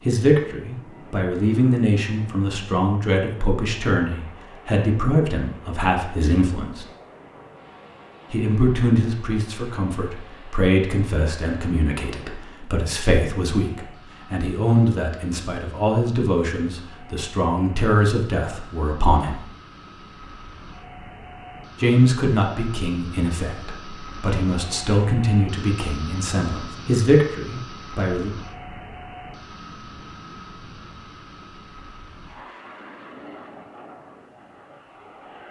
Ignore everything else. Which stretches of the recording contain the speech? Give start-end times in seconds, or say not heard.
0.1-6.8, 8.3-19.4, 21.8-28.3.